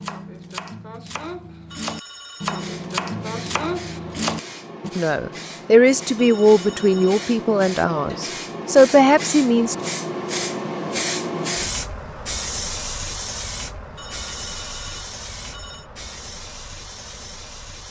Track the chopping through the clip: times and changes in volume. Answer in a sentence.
The chopping can be heard from 0.0 to 4.9 s, getting louder.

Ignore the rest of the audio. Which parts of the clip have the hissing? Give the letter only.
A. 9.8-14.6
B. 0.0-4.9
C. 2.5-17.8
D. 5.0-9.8
C.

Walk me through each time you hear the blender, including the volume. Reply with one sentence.
You can't hear the blender here.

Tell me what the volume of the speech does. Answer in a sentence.
The loudness of the speech goes down, then up.